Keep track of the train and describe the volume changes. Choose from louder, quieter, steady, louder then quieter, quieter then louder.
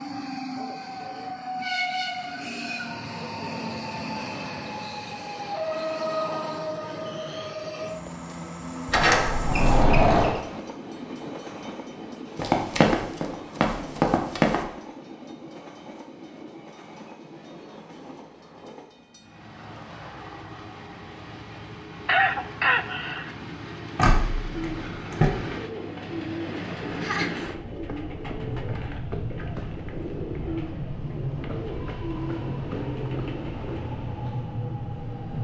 quieter then louder.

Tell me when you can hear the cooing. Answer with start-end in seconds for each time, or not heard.
24.5-33.9.